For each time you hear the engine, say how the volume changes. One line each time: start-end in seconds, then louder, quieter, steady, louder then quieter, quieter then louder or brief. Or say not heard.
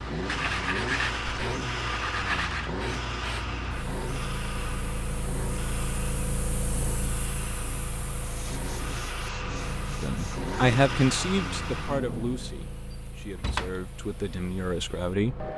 0.0-12.6 quieter then louder.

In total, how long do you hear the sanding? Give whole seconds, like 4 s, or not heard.
5 s.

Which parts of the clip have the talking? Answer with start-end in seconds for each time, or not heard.
10.0-15.4.